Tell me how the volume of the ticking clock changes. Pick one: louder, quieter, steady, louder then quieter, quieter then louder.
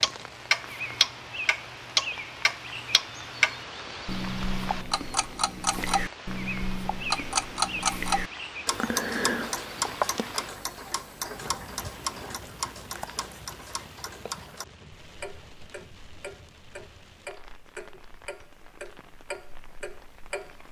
quieter.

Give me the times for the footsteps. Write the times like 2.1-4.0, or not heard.
not heard.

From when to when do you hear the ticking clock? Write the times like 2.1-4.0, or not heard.
0.0-20.6.